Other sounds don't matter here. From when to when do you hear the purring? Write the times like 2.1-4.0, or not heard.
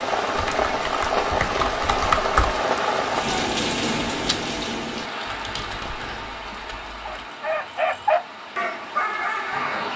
not heard.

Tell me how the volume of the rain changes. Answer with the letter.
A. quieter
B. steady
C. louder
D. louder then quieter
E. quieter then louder
A.